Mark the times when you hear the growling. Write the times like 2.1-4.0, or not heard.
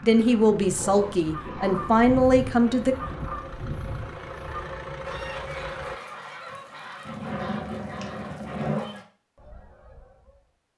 0.8-2.0, 7.0-9.0.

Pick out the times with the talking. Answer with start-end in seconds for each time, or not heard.
0.0-3.0.